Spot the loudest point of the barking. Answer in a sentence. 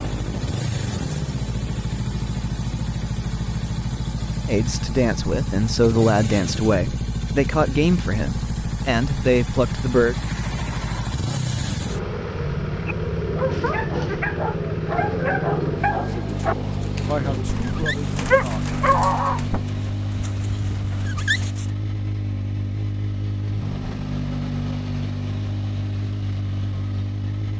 The volume of the barking peaks at 19 seconds.